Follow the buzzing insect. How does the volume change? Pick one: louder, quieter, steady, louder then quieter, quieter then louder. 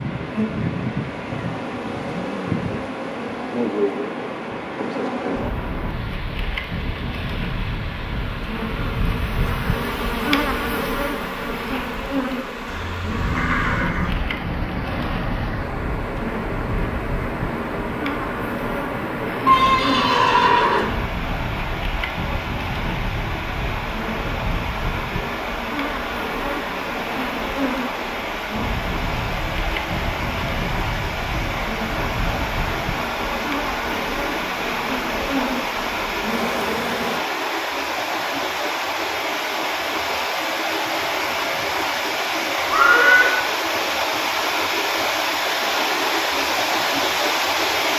steady.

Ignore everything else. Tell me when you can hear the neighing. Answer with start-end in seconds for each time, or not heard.
12.7-14.2, 19.4-20.9, 42.6-43.4.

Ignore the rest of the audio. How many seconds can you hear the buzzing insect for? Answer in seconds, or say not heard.
37 s.